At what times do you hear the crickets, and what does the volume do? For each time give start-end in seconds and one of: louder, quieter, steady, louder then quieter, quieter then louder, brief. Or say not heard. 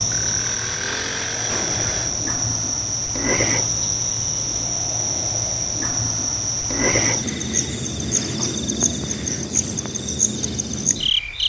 0.0-11.4 steady.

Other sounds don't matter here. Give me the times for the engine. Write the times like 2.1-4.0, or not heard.
0.1-2.1.